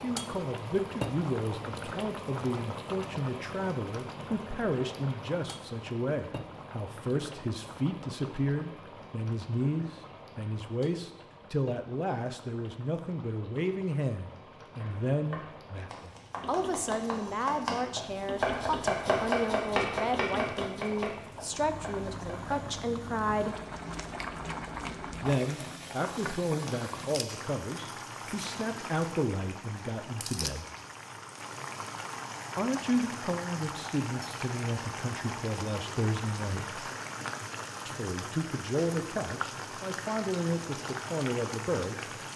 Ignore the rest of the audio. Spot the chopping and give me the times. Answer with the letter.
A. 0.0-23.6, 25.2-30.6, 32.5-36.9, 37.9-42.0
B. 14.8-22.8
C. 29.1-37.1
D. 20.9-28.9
B.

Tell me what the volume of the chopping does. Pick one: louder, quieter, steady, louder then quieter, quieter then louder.
louder then quieter.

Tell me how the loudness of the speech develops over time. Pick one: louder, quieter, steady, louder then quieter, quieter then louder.
steady.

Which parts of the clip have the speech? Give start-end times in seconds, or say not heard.
0.0-23.6, 25.2-30.6, 32.5-36.9, 37.9-42.0.